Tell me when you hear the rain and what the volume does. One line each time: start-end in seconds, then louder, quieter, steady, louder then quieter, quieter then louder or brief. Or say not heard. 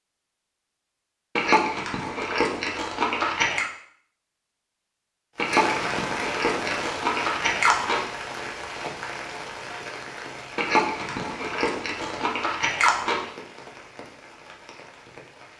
5.3-15.5 quieter.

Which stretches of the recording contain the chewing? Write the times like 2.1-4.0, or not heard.
1.4-3.6, 5.3-8.0, 10.6-13.3.